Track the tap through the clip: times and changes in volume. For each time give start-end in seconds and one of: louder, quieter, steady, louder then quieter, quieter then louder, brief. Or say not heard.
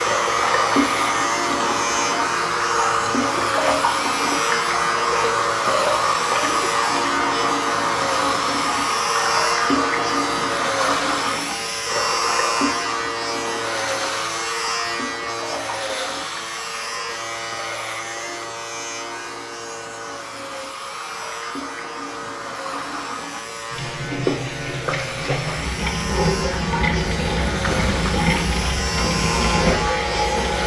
0.0-30.6 quieter then louder.